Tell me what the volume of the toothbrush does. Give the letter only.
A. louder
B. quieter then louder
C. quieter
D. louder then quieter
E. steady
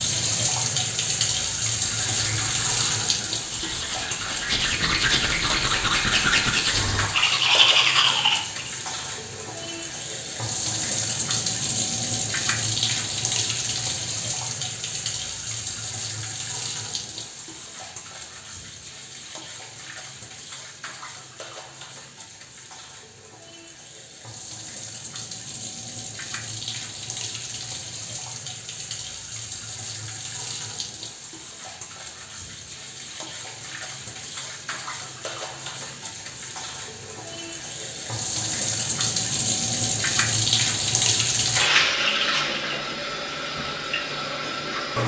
A.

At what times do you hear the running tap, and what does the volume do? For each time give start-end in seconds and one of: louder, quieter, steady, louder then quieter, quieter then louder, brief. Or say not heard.
0.0-45.0 quieter then louder.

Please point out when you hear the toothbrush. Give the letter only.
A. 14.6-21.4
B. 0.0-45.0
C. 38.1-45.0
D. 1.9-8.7
D.